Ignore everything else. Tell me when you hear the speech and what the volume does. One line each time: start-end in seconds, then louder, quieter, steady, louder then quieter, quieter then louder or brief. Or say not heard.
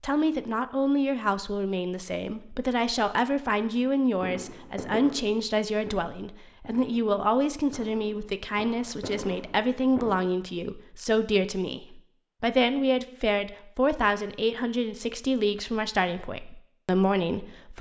0.0-17.7 steady.